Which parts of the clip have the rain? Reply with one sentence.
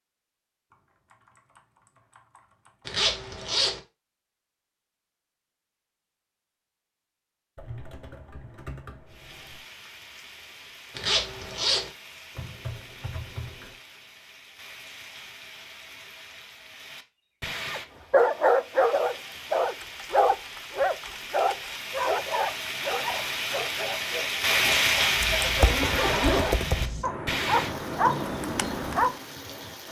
The rain can be heard from 9.1 to 29.8 s.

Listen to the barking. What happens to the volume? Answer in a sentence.
The volume of the barking goes down, then up.